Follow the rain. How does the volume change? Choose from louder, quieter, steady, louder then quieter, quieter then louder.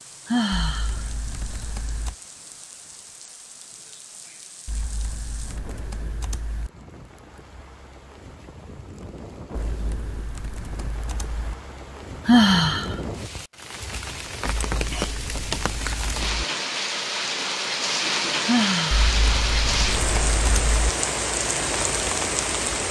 louder.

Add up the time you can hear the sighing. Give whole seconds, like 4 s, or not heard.
2 s.